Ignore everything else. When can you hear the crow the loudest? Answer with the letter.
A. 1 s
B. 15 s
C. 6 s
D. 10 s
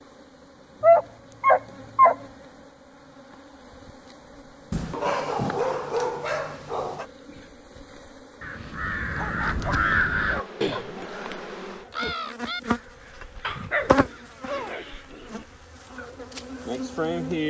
D.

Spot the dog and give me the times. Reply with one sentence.
You can hear the dog from 0.8 to 2.1 s, from 4.7 to 7.0 s, from 9.2 to 10.9 s and from 13.4 to 15.4 s.